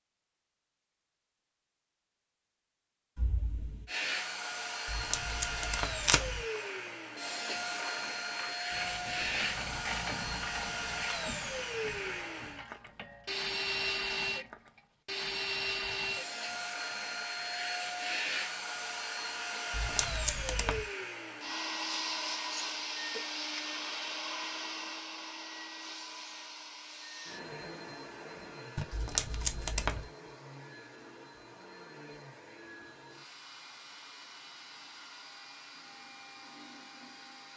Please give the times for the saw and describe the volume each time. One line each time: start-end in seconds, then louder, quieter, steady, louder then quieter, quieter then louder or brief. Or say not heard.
not heard.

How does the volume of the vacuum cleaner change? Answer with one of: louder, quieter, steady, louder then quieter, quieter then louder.
quieter.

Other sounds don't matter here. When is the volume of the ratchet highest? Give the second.
10 s.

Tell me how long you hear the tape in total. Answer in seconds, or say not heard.
4 s.